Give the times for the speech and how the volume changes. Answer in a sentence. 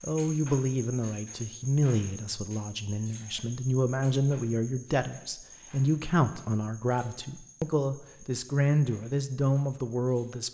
The speech can be heard from 0.0 to 10.5 s, at a steady volume.